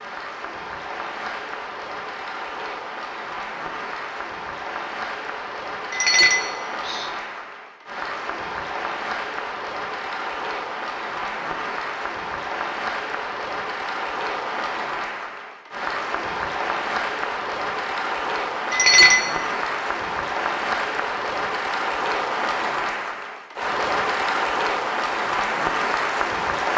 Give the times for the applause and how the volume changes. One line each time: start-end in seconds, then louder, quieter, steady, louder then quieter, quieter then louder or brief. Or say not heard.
0.0-26.7 louder.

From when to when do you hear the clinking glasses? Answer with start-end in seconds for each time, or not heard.
5.9-7.1, 18.7-19.2.